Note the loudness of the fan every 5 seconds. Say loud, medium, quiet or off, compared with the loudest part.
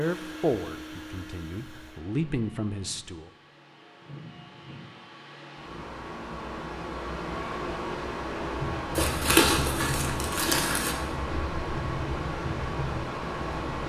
medium, loud, loud.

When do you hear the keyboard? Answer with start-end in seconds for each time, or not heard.
8.5-13.8.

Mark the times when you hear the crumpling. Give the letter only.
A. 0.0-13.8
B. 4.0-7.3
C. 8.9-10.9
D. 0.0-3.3
C.